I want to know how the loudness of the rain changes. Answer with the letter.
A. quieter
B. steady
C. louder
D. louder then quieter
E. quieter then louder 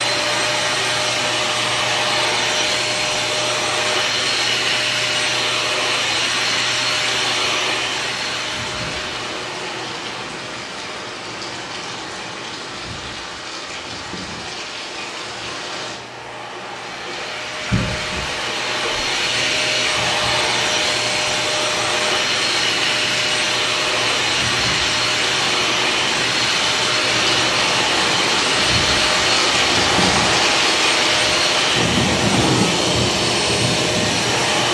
C.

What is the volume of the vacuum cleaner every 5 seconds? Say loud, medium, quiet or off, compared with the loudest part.
loud, loud, quiet, medium, loud, loud, loud.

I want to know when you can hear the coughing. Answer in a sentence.
The coughing can be heard from 17.7 to 18.2 s.